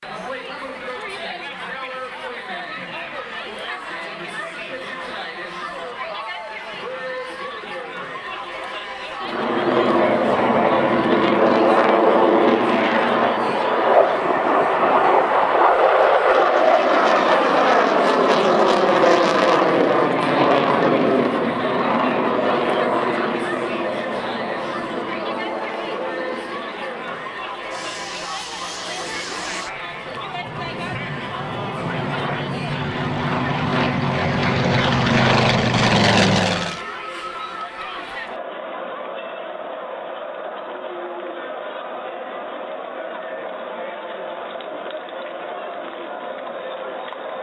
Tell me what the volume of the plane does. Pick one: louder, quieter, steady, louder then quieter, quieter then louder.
quieter then louder.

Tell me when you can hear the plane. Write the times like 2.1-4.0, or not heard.
9.2-36.8.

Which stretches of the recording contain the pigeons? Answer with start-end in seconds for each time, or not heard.
not heard.